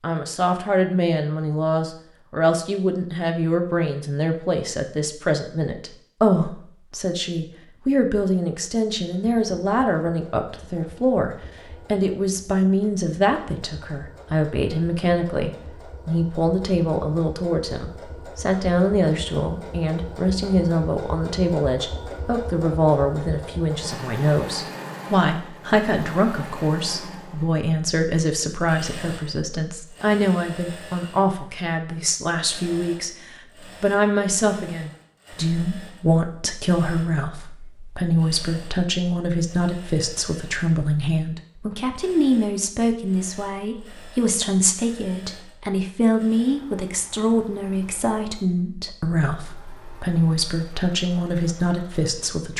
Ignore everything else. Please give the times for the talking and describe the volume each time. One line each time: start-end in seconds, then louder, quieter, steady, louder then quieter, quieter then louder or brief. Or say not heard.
0.0-52.5 steady.